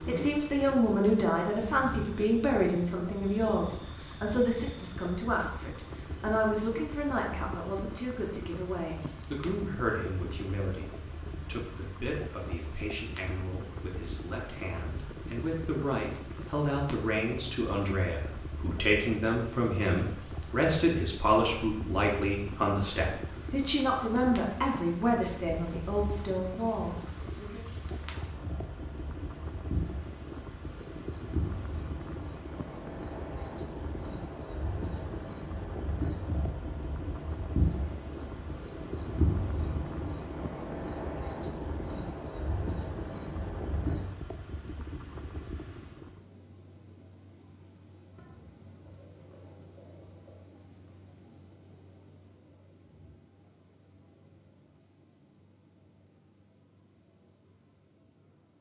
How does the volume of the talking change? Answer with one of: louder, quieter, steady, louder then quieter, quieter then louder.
quieter then louder.